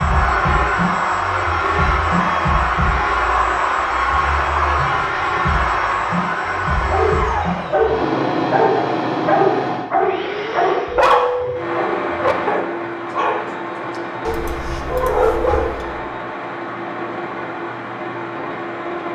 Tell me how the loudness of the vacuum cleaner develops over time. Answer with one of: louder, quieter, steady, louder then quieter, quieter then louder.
quieter.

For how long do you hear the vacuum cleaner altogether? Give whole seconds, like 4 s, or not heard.
19 s.